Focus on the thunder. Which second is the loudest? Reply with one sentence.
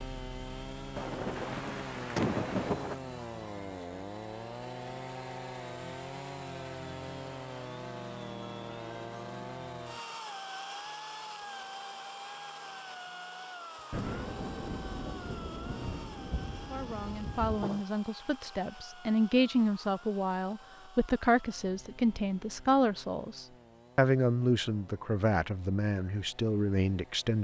The loudest moment of the thunder is at 2 seconds.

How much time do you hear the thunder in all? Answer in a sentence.
The thunder can be heard for 6 seconds in total.